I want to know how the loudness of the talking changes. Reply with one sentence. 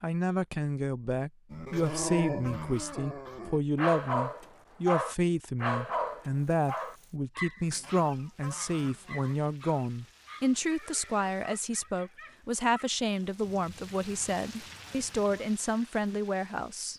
The loudness of the talking stays about the same.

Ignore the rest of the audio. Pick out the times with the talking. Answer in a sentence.
The talking can be heard from 0.0 to 16.9 s.